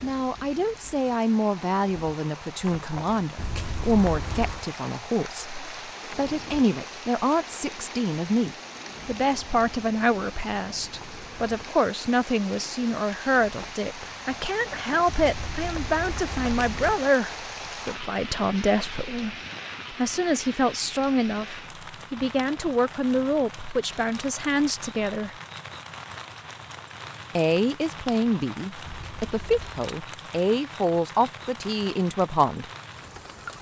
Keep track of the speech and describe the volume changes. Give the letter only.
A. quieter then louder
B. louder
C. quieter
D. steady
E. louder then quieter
D.